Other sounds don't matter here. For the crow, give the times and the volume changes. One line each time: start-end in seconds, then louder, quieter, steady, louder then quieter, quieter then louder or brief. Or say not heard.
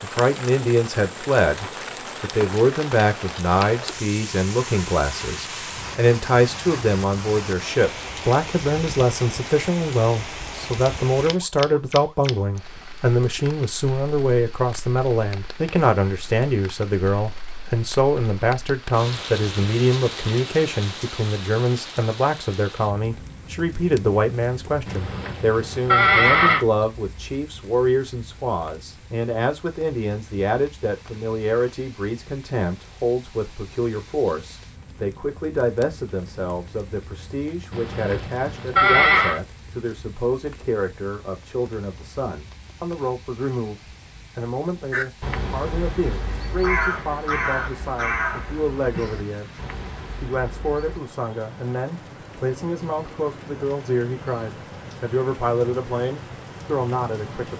44.9-51.0 louder then quieter.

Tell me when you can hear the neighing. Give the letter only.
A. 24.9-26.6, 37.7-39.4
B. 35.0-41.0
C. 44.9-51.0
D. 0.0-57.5
A.